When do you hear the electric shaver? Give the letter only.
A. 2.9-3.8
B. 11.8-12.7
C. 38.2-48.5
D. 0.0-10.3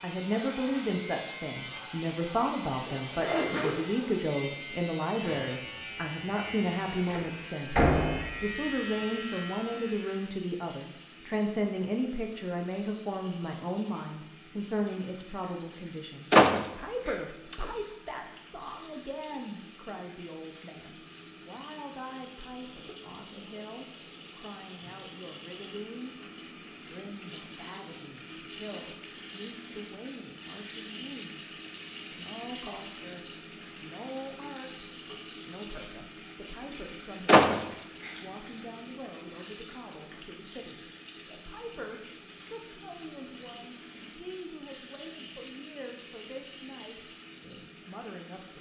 D.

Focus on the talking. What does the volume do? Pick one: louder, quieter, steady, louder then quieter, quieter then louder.
quieter.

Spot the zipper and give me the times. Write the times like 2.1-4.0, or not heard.
2.9-3.8.